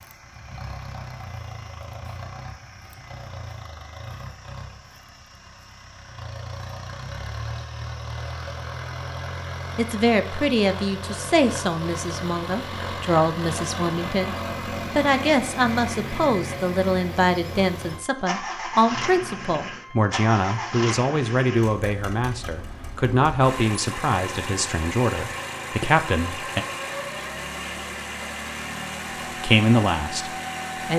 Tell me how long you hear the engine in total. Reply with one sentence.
The engine can be heard for 31 seconds in total.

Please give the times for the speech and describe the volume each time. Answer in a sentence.
You can hear the speech from 9.8 to 26.6 s, at a steady volume; and briefly from 29.4 to 30.9 s.